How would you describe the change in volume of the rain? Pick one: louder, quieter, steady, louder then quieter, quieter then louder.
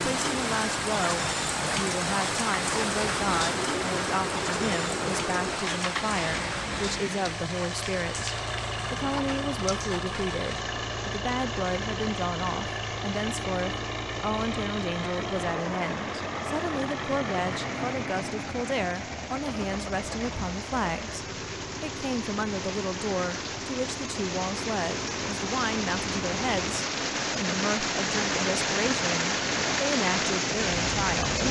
quieter then louder.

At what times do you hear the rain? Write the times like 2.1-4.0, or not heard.
0.0-31.4.